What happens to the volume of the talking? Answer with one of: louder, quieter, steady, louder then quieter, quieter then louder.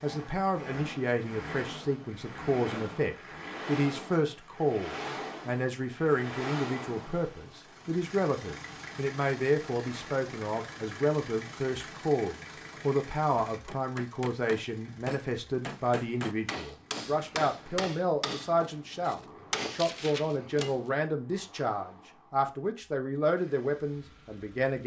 steady.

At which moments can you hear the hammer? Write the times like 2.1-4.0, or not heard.
13.7-20.9.